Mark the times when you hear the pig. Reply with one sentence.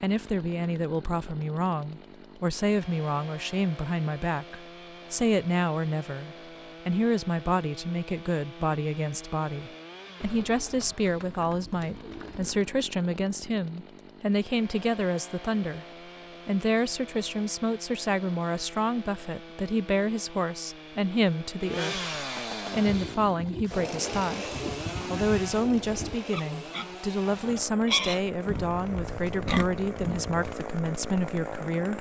You can hear the pig from 22.6 to 30.6 s.